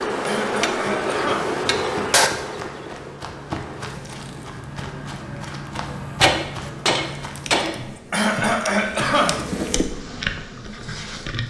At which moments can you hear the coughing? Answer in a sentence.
You can hear the coughing from 0.2 to 1.6 s and from 8.1 to 9.4 s.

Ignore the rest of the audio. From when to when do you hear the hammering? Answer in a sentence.
The hammering can be heard from 0.6 to 2.3 s and from 5.8 to 7.8 s.